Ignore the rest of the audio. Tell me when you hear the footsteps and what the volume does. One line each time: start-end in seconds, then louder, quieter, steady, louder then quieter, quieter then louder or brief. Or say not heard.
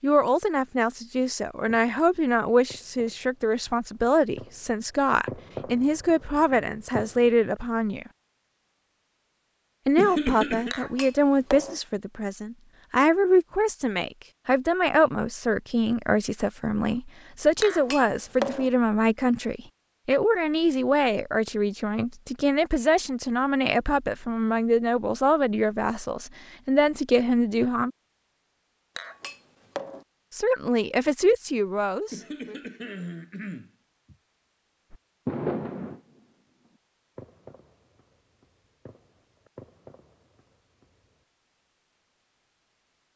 not heard.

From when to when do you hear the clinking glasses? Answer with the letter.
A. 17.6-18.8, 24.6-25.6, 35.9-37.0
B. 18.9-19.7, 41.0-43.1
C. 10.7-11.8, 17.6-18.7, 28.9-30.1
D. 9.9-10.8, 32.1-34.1
C.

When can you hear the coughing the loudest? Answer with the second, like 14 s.
10 s.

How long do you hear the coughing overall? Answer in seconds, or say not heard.
3 s.